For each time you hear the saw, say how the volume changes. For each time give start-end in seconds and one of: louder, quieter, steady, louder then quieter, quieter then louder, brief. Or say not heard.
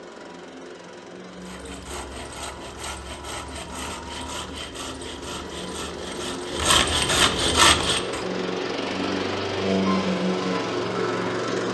1.3-8.2 louder.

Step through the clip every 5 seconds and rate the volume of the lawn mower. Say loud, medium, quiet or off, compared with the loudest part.
quiet, loud, loud.